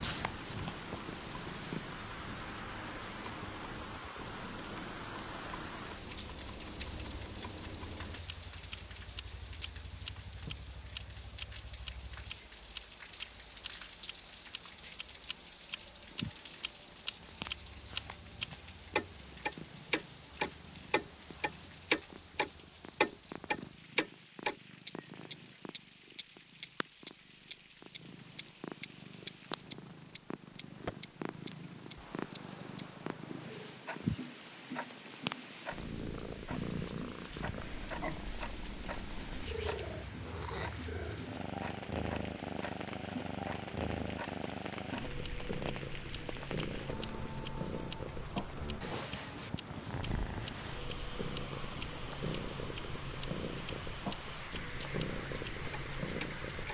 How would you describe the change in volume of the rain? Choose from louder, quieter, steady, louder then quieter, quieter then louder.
quieter then louder.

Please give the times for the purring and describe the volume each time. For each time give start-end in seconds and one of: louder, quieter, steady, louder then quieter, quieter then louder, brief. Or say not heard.
0.0-2.0 brief
16.1-56.6 louder.